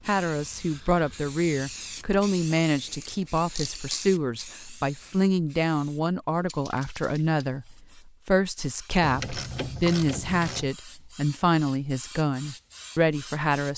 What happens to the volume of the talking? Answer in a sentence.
The volume of the talking stays about the same.